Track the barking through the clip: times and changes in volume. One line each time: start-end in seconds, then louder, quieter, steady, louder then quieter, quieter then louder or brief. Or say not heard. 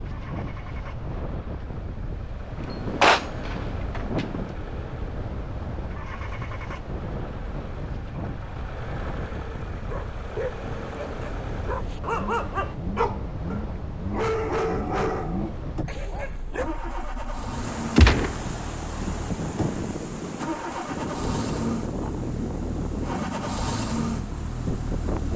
9.8-16.7 louder then quieter.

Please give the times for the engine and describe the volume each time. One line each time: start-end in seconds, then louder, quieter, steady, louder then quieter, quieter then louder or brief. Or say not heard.
0.0-25.3 louder.